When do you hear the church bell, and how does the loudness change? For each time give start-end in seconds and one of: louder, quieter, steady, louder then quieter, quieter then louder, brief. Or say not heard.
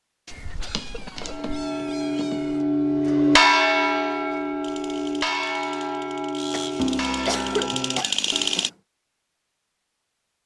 1.1-8.7 louder then quieter.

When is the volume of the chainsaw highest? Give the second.
8 s.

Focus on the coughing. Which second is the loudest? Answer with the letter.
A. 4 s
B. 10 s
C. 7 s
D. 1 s
C.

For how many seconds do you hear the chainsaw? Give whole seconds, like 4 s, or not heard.
4 s.